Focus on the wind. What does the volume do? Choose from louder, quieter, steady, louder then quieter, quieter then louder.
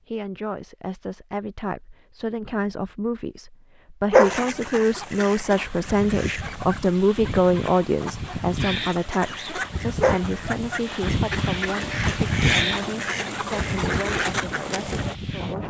louder then quieter.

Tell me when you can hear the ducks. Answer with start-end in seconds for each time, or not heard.
4.2-15.2.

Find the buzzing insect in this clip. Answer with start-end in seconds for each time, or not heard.
not heard.